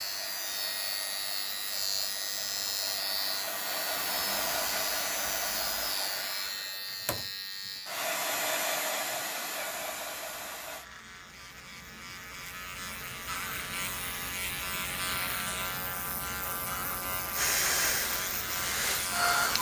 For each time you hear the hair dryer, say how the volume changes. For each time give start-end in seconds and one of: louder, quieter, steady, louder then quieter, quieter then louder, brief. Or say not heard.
0.0-10.9 louder
17.3-19.5 brief.